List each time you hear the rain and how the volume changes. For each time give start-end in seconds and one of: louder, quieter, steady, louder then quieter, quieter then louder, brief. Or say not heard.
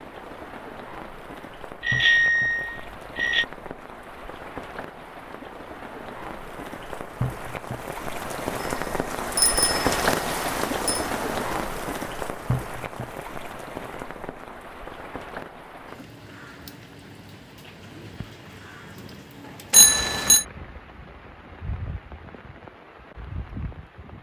0.0-24.1 louder then quieter.